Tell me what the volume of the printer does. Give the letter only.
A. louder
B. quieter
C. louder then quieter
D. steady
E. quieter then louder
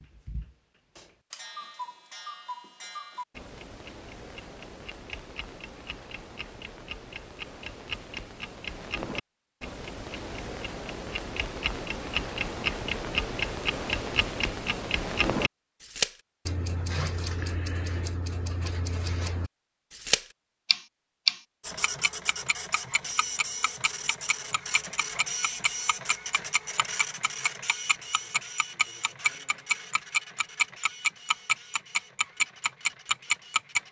B.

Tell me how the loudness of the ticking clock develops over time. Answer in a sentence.
The loudness of the ticking clock goes up.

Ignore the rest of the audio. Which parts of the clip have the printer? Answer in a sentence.
You can hear the printer from 21.6 to 33.8 s.